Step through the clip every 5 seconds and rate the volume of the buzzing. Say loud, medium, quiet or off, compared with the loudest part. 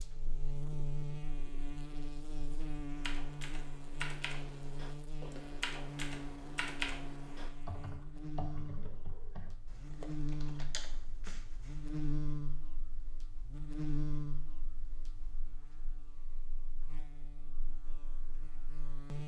loud, medium, loud, medium.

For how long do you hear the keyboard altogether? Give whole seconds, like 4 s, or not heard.
9 s.